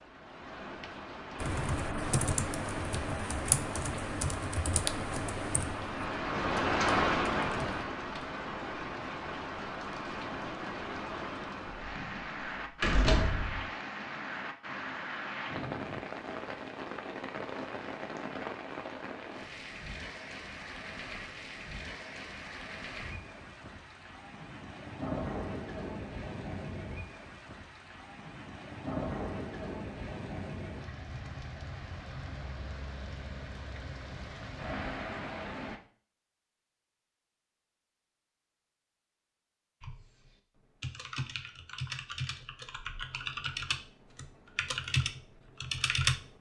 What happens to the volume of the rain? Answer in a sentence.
The loudness of the rain goes down.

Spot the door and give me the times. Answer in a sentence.
You can hear the door from 11.8 to 13.7 s.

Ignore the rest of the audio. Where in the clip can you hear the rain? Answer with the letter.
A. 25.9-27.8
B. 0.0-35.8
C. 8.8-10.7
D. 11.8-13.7
B.